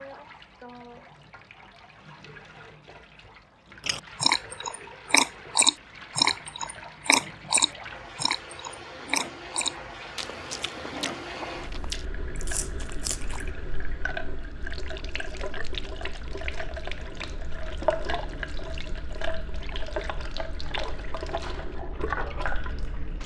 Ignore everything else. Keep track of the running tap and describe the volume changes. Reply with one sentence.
The volume of the running tap goes up.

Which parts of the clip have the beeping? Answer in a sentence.
The beeping can't be heard in this clip.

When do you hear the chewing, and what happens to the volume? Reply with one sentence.
The chewing can be heard from 3.9 to 13.6 s, getting quieter.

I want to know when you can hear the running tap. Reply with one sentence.
You can hear the running tap from 0.0 to 23.2 s.